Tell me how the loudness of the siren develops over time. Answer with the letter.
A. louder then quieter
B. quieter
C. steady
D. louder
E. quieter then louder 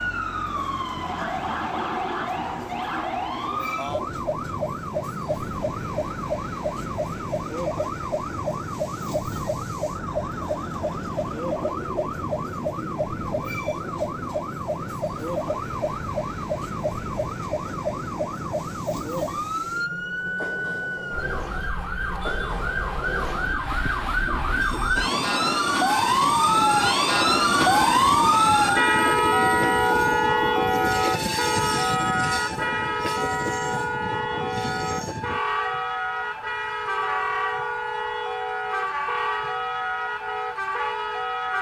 A.